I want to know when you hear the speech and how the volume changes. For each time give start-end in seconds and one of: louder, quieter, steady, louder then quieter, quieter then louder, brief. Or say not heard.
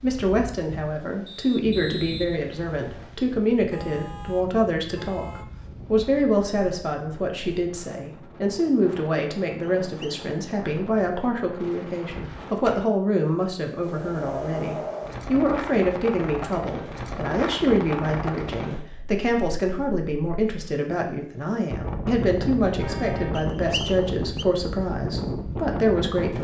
0.0-26.3 steady.